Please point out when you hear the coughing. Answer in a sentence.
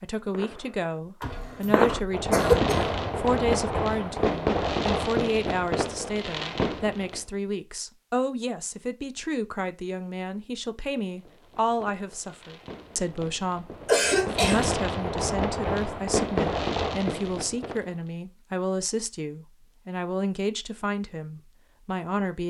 You can hear the coughing from 1.2 to 3.0 s and from 13.8 to 14.8 s.